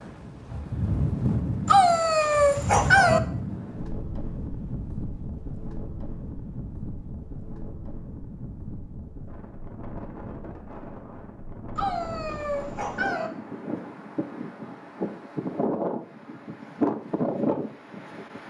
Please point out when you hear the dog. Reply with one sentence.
The dog can be heard from 1.6 to 3.2 s and from 11.8 to 13.3 s.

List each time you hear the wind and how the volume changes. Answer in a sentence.
The wind can be heard from 0.0 to 18.4 s, getting quieter then louder.